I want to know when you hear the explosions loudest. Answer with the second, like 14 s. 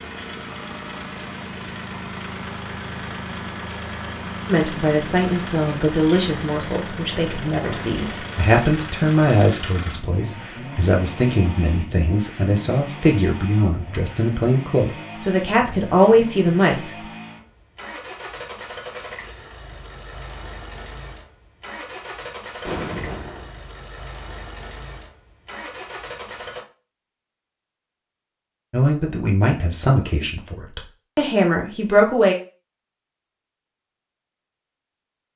23 s.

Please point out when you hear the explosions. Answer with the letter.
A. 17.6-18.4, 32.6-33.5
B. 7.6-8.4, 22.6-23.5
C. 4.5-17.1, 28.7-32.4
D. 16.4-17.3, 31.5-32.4
B.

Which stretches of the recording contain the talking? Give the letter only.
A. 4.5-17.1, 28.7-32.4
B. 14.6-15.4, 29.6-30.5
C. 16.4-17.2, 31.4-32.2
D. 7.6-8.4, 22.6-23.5
A.